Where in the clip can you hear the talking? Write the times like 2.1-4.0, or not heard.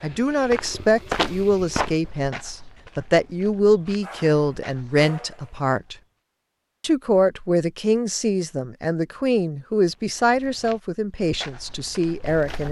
0.0-6.0, 6.8-12.6.